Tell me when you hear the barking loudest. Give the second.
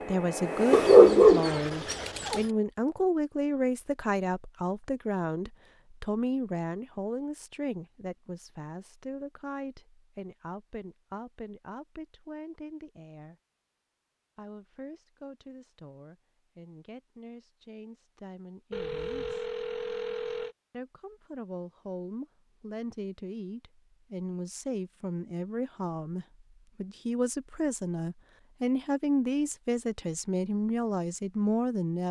1 s.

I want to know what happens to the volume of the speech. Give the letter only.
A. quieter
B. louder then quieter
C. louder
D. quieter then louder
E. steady
D.